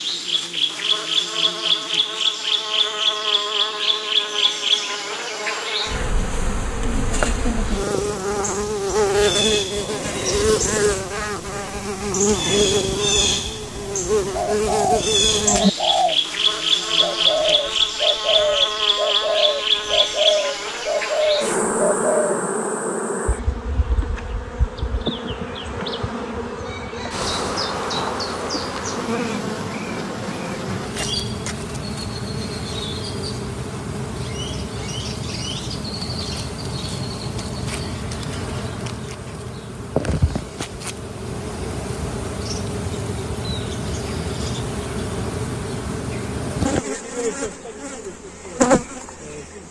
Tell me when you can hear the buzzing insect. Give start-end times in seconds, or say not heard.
0.0-49.6.